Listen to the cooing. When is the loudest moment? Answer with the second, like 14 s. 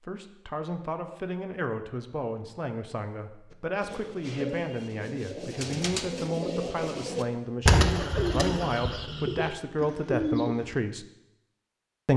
8 s.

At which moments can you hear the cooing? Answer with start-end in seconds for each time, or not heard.
3.5-10.8.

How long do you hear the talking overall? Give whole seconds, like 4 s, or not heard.
11 s.